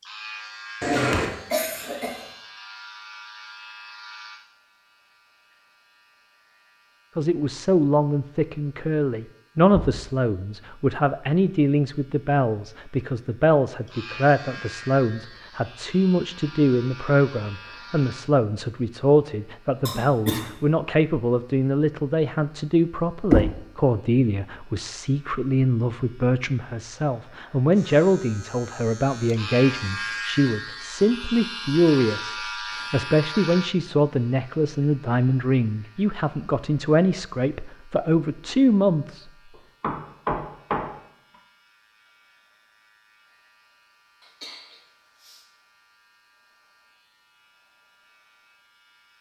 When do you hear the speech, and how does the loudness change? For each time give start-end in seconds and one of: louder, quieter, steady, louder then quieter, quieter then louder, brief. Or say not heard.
7.2-39.2 steady.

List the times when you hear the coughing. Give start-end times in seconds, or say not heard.
0.8-2.2, 19.9-20.5, 44.2-45.5.